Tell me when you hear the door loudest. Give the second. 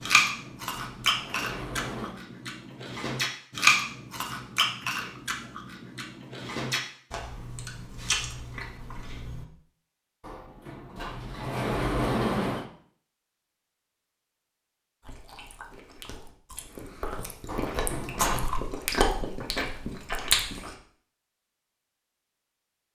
12 s.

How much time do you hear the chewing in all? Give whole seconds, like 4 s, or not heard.
15 s.